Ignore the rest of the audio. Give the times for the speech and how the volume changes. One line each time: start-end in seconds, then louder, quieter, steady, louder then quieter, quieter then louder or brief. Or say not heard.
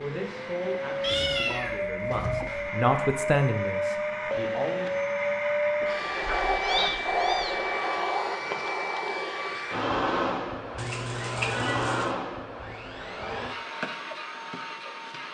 0.0-5.0 louder then quieter.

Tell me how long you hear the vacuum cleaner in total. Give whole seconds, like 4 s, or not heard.
15 s.